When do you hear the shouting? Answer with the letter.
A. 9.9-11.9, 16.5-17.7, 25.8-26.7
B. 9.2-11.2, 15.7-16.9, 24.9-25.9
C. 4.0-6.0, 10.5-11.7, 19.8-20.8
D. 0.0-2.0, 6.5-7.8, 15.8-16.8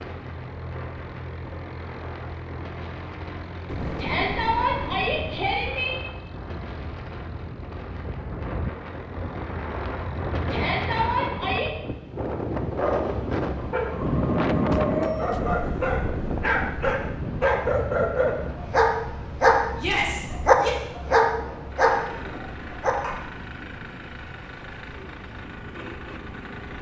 C.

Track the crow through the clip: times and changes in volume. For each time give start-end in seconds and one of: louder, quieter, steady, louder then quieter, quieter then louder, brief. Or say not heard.
not heard.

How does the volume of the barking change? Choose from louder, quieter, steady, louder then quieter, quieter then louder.
louder.